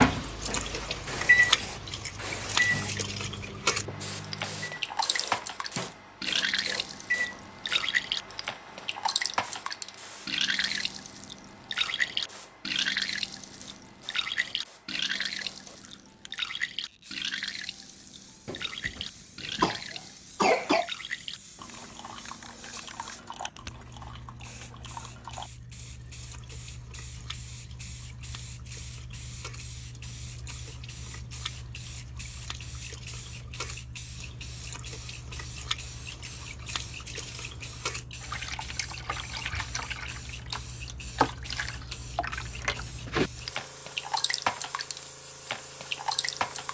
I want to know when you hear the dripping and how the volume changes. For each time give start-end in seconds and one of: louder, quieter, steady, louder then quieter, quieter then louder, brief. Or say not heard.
0.0-46.6 quieter then louder.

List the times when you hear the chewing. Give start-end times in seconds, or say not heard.
not heard.